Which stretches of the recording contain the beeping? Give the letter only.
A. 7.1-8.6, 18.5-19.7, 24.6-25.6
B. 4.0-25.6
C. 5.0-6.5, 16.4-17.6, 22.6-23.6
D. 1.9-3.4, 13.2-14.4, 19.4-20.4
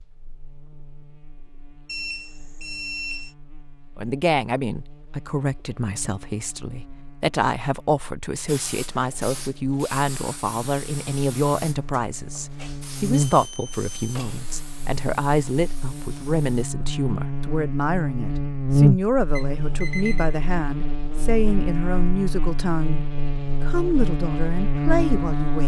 D.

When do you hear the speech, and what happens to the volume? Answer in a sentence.
You can hear the speech from 4.0 to 25.6 s, at a steady volume.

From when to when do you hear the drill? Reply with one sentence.
You can't hear the drill here.